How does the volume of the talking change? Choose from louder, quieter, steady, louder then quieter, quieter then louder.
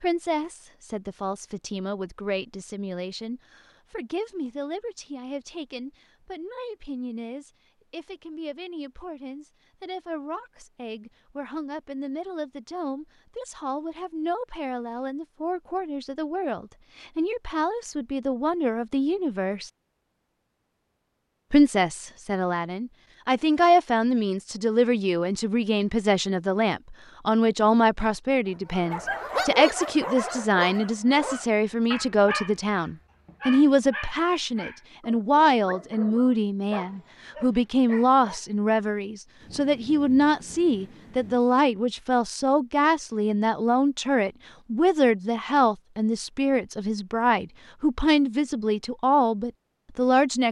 louder.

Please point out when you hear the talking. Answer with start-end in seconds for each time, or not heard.
0.0-19.7, 21.5-50.4.